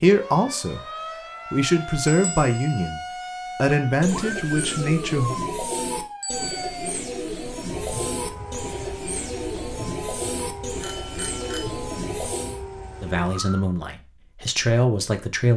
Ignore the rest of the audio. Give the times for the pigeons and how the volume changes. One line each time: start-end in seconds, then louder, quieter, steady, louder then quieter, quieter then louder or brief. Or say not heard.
3.8-12.6 steady.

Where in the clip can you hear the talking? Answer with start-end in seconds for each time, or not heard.
0.0-5.3, 13.0-15.5.